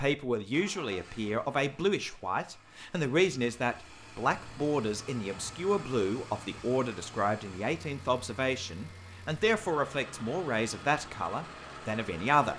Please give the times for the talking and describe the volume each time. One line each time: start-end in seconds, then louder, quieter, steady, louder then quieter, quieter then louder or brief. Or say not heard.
0.0-12.5 steady.